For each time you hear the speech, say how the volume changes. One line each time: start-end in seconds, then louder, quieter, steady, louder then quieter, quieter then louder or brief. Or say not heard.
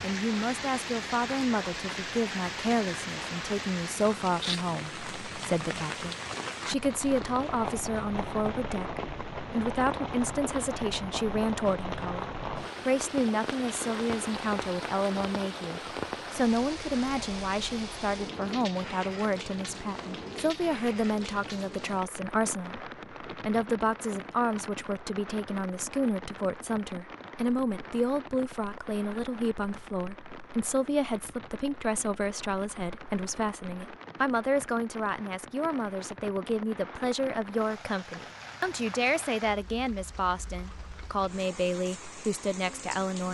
0.0-43.3 steady.